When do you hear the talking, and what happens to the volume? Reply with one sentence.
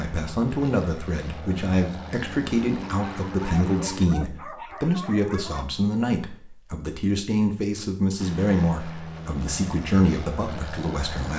The talking can be heard from 0.0 to 11.3 s, at a steady volume.